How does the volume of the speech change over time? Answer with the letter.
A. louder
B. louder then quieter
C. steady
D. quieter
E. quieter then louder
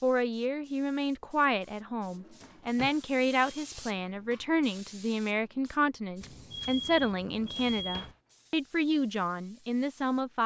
C.